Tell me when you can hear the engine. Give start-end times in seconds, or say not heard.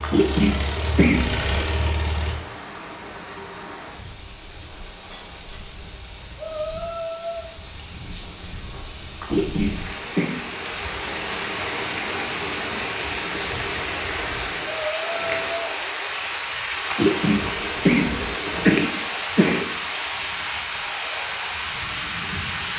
0.0-2.4.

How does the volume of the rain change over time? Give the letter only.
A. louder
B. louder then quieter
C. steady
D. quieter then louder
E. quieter
A.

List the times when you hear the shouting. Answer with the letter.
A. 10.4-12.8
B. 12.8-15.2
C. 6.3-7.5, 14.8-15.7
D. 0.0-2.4
C.